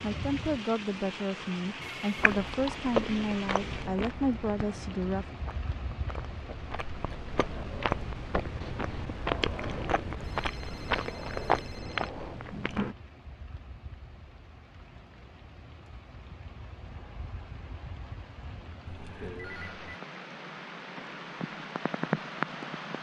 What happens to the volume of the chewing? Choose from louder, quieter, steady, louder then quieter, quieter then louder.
quieter then louder.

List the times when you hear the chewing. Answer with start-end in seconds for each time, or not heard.
2.1-12.9.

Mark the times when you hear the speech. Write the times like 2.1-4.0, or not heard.
0.0-5.2.